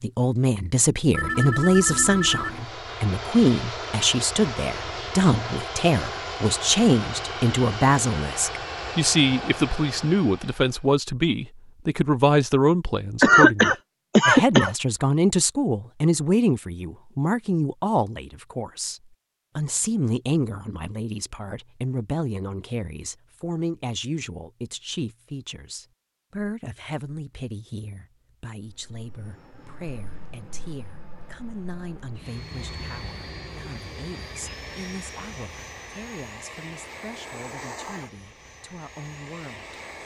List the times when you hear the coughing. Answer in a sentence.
The coughing can be heard from 13.2 to 14.7 s.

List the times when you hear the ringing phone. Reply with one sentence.
You can hear the ringing phone from 1.1 to 2.6 s.